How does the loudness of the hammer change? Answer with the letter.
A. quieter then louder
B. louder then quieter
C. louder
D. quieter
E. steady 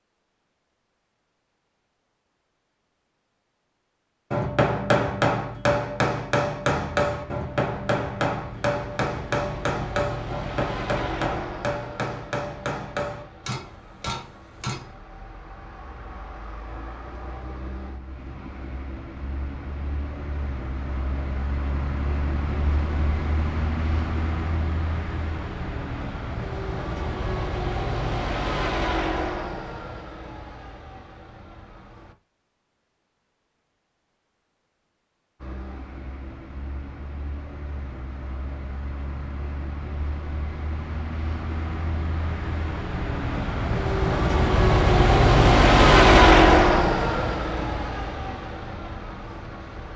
D.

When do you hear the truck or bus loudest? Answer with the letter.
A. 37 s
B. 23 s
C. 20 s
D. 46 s
D.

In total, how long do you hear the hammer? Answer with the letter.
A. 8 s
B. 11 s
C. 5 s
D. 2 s
B.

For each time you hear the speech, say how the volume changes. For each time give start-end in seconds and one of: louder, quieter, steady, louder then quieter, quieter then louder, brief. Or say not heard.
not heard.